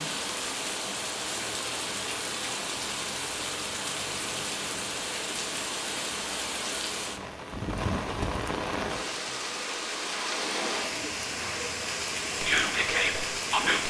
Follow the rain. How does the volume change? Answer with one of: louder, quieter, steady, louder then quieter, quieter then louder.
steady.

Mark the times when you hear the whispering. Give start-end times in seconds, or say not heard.
12.4-13.8.